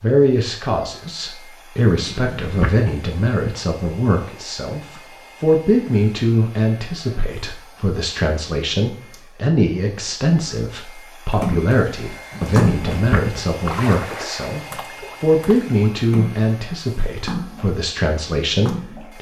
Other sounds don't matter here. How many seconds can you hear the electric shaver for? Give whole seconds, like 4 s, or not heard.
not heard.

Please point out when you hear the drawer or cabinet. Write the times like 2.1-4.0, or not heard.
1.9-2.9, 12.3-13.4.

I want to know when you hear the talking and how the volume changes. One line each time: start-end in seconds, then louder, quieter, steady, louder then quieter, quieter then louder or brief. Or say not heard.
0.0-19.1 steady.